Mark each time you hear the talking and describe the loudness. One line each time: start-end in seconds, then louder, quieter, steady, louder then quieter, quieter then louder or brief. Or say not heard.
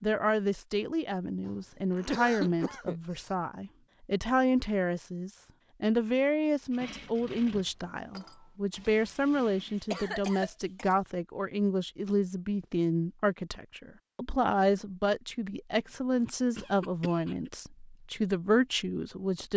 0.0-19.5 steady.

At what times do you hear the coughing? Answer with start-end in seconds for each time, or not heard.
1.4-3.2, 8.8-10.9, 16.6-17.5.